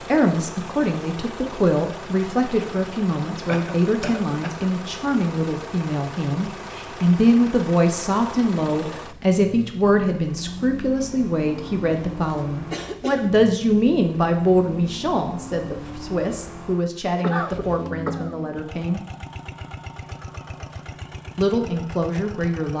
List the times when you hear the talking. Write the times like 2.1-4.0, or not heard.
0.1-19.0, 21.4-22.7.